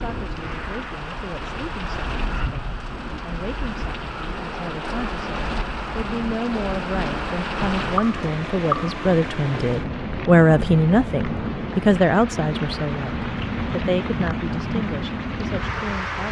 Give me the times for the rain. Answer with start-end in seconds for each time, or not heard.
0.0-16.2.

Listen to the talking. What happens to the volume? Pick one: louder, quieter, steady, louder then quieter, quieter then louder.
louder then quieter.